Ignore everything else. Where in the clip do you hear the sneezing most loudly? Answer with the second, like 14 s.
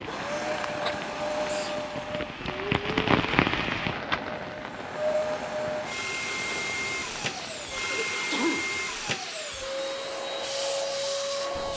8 s.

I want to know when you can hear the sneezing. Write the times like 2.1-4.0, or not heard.
1.4-1.9, 7.9-8.7.